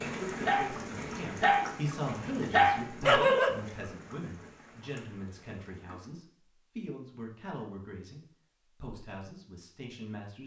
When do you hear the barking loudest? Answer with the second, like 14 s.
3 s.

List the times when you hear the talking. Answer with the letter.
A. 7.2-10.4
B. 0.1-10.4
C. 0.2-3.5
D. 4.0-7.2
B.